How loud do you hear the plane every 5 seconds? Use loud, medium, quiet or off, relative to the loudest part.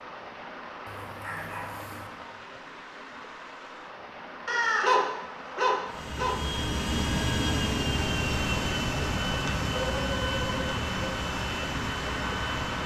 off, loud, loud.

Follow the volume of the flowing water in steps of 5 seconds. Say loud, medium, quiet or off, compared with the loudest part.
medium, loud, loud.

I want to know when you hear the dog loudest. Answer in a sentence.
The volume of the dog peaks at 5 seconds.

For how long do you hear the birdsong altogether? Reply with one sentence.
You can't hear the birdsong here.